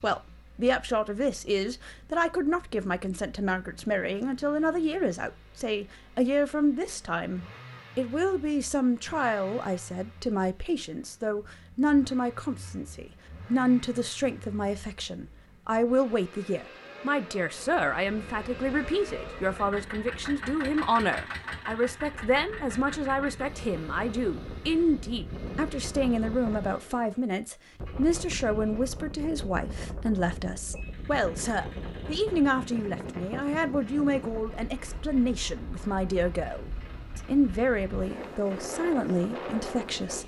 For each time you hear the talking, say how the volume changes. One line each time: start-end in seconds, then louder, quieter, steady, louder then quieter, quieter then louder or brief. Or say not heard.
0.0-40.2 steady.